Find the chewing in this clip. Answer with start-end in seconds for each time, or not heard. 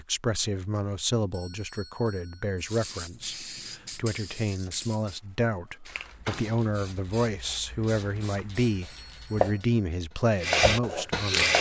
not heard.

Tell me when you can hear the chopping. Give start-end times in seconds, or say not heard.
8.0-11.5.